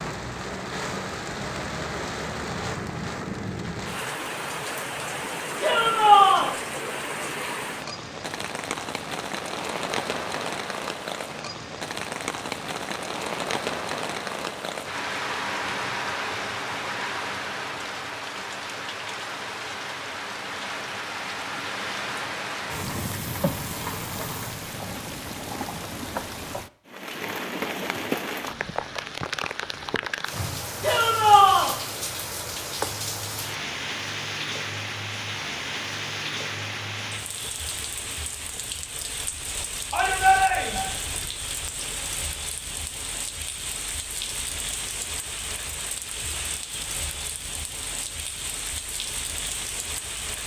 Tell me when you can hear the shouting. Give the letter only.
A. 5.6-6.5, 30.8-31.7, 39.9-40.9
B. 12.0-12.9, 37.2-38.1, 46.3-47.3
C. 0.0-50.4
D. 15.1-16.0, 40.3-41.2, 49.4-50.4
A.